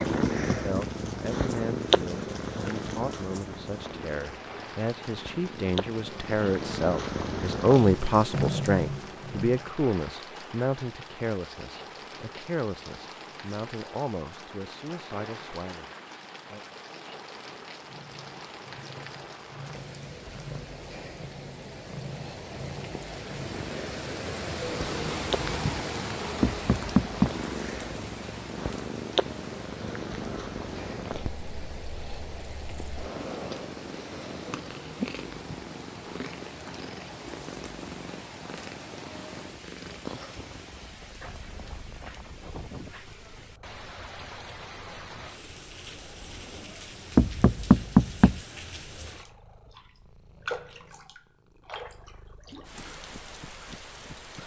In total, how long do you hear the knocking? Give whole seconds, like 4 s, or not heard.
3 s.